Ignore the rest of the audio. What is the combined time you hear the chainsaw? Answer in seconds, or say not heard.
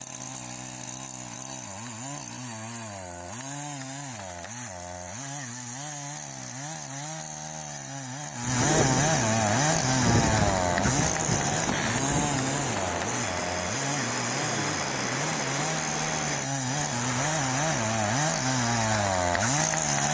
20 s.